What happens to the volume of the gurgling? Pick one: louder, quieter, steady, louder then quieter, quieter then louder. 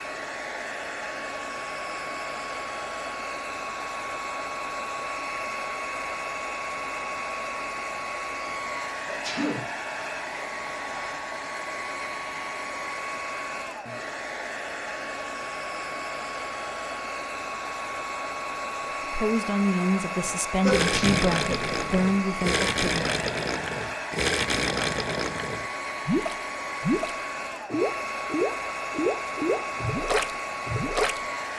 steady.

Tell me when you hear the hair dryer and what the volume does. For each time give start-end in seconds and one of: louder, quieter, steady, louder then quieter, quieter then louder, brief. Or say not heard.
0.0-31.5 steady.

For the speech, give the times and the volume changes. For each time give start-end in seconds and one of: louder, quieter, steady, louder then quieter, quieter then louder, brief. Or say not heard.
19.1-23.1 steady.